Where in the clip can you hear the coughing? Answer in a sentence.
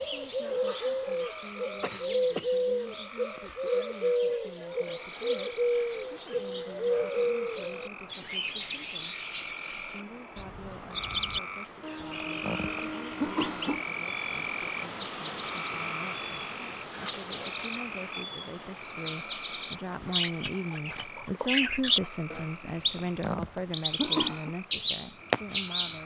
The coughing can be heard from 1.8 to 3.7 s, from 12.0 to 13.8 s and from 22.8 to 24.6 s.